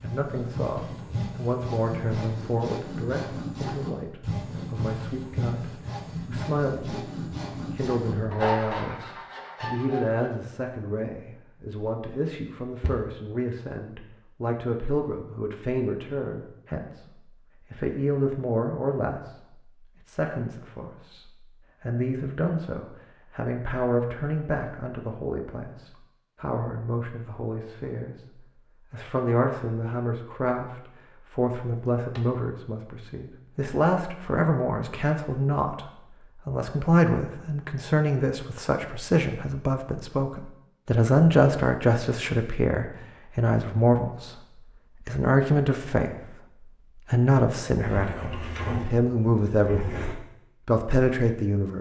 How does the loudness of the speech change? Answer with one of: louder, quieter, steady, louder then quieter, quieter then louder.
louder.